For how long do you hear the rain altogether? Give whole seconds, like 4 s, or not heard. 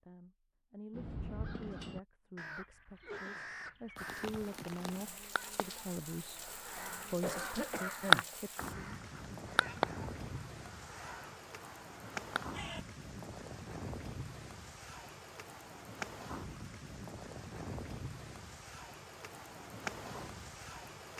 17 s.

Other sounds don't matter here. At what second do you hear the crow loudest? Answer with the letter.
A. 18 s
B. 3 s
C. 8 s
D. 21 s
C.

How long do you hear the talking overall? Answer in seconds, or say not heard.
8 s.